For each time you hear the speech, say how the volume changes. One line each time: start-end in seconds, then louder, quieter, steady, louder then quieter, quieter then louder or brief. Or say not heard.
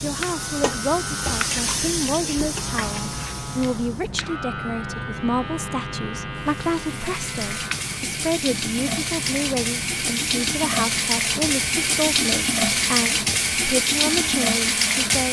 0.0-15.2 steady.